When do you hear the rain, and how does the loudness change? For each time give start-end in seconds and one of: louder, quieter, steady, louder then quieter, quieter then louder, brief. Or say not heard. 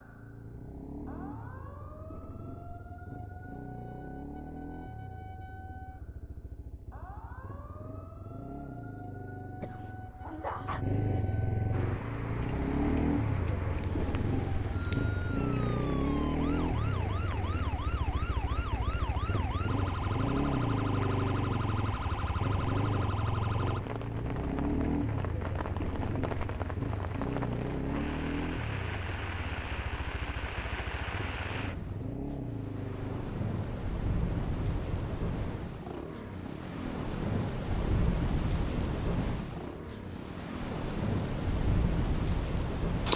11.7-43.1 louder.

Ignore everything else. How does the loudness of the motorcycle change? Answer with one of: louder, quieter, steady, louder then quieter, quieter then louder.
louder then quieter.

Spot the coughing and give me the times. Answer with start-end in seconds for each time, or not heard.
9.6-10.8.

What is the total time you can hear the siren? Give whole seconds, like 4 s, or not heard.
24 s.